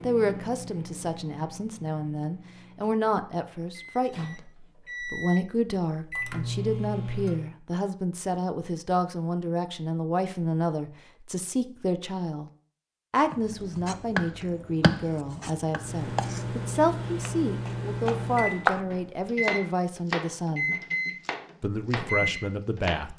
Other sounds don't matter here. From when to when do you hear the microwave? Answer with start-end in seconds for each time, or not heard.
0.0-7.5, 15.8-22.9.